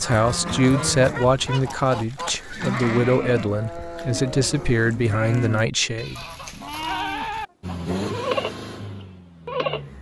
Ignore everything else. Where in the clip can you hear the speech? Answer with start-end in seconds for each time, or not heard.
0.0-6.2.